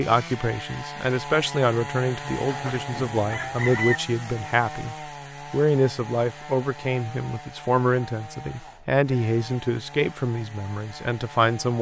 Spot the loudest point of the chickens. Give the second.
4 s.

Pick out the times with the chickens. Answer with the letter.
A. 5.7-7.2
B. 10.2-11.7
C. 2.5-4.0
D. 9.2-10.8
C.